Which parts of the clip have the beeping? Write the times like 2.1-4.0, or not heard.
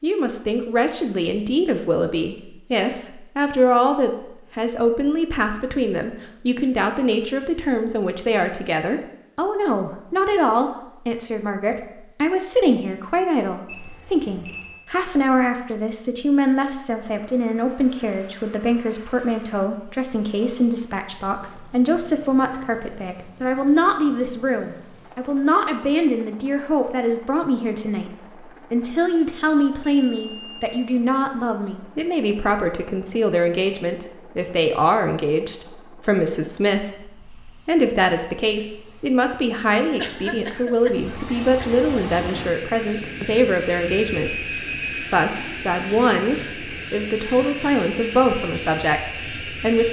13.7-14.8, 29.8-30.8, 44.1-45.1.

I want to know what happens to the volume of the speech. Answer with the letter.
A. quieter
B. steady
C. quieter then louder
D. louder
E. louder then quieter
B.